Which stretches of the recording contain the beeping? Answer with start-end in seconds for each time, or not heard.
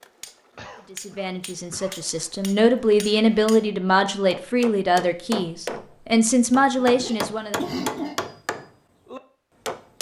not heard.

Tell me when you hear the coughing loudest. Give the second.
8 s.